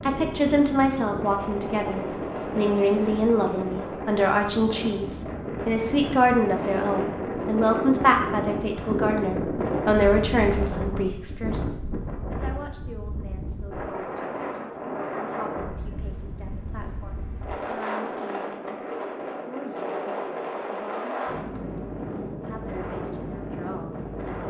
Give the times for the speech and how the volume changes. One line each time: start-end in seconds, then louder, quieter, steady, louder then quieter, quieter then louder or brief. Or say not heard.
0.0-24.4 quieter.